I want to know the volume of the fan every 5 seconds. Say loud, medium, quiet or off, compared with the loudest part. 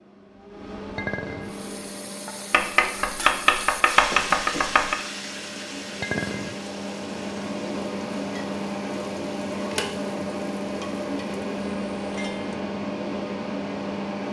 medium, loud, loud.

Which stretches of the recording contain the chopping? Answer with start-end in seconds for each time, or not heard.
2.5-5.0.